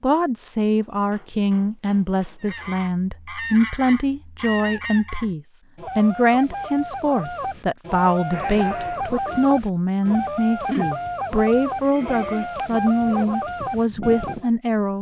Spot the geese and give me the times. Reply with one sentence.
You can hear the geese from 2.4 to 14.5 s.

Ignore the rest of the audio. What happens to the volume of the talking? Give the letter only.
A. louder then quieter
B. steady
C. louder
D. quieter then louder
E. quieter
B.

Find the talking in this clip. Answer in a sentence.
You can hear the talking from 0.0 to 14.9 s.